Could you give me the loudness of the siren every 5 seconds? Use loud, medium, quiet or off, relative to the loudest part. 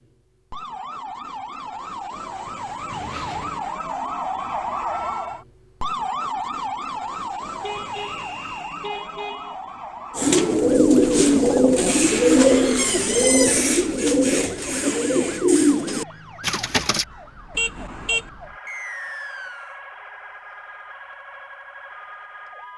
loud, loud, medium, medium, medium.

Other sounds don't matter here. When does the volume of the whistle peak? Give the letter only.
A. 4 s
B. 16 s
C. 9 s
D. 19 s
D.